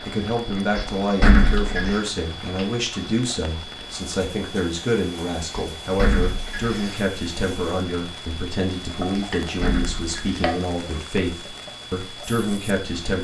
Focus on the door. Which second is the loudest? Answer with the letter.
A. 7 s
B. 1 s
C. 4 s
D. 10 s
B.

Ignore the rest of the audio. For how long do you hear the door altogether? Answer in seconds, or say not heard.
4 s.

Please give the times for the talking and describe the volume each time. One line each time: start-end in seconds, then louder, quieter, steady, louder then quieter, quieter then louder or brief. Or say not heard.
0.1-13.1 steady.